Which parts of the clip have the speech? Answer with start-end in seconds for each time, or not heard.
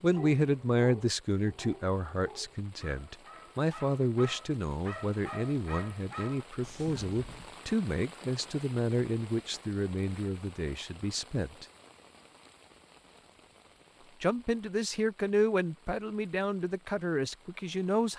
0.0-11.7, 14.2-18.1.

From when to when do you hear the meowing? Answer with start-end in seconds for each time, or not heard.
not heard.